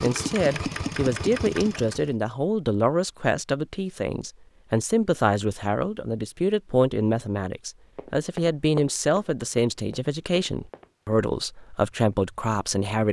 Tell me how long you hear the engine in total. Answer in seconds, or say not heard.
2 s.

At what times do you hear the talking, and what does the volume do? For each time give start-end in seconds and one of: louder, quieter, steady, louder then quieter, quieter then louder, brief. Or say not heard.
0.0-13.0 steady.